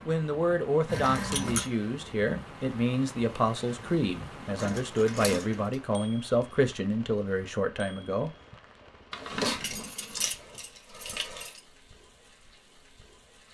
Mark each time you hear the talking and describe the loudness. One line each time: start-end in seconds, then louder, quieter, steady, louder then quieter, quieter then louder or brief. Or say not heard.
0.1-8.3 steady.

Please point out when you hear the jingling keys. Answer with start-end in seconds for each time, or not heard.
0.8-1.7, 4.5-5.8, 9.1-11.6.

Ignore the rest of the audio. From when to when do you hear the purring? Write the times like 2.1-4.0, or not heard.
not heard.